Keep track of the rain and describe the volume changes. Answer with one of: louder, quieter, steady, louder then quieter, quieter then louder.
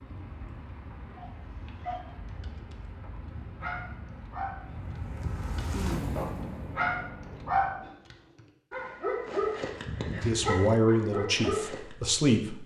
louder.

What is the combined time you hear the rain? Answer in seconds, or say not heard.
8 s.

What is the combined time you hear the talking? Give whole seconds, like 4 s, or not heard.
2 s.